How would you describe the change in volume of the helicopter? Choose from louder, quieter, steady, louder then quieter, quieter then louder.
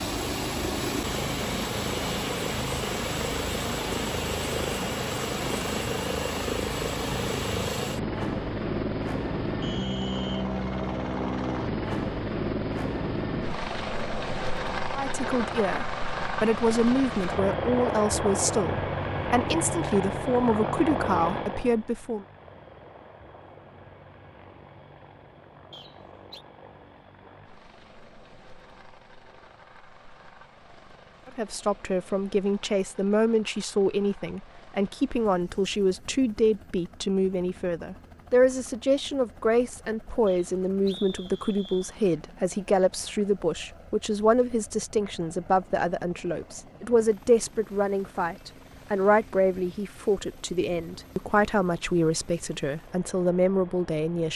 quieter.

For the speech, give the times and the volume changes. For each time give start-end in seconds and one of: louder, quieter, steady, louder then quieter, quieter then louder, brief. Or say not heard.
14.9-22.2 steady
31.2-54.3 steady.